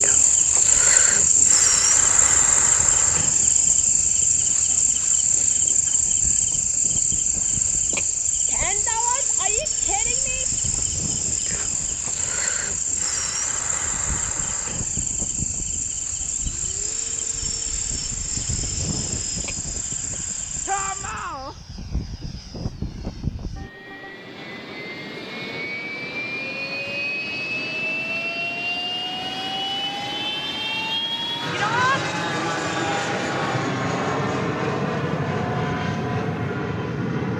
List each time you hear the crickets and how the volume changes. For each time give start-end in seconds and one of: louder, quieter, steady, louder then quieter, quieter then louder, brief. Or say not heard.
0.0-21.2 quieter.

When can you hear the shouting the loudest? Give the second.
32 s.